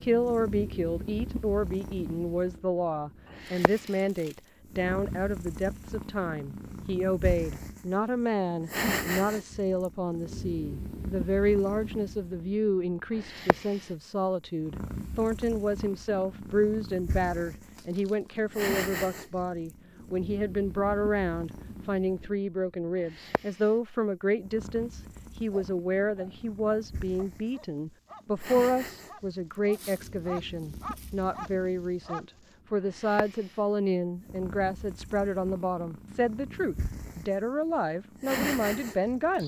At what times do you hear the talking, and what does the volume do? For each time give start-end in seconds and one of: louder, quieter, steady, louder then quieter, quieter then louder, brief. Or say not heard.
0.0-39.4 steady.